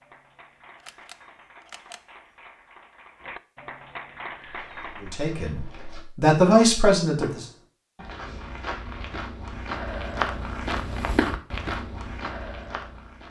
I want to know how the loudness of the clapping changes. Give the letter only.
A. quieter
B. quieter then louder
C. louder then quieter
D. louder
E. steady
D.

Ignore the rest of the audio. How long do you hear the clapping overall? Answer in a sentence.
The clapping can be heard for 5 seconds in total.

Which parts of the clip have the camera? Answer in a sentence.
The camera can be heard from 0.8 to 2.0 s.